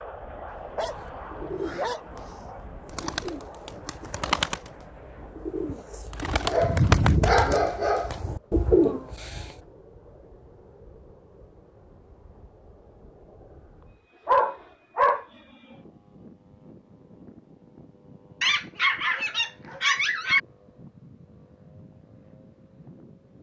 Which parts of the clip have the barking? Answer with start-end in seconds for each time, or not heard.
0.5-2.0, 6.5-8.1, 14.2-15.2, 18.4-20.4.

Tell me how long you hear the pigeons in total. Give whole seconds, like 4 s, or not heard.
9 s.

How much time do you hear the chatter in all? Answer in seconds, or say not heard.
not heard.